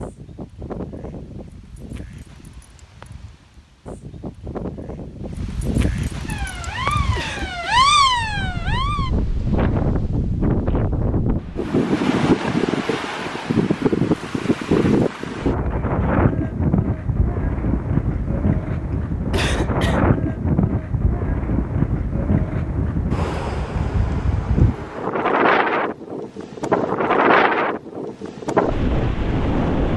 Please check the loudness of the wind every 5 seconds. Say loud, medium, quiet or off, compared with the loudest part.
quiet, medium, loud, loud, loud, loud.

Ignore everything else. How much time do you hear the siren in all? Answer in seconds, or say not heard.
3 s.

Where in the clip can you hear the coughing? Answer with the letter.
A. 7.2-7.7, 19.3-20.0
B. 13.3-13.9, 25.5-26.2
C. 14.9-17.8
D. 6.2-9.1
A.